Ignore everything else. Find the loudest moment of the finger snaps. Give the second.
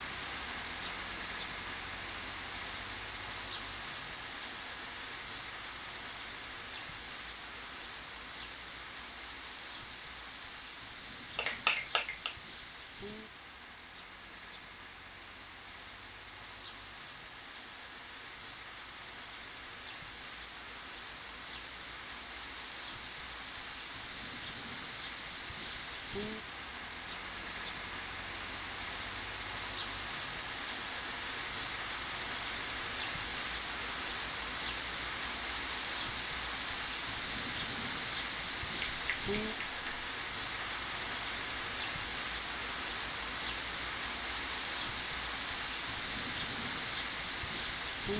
12 s.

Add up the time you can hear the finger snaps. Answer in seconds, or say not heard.
2 s.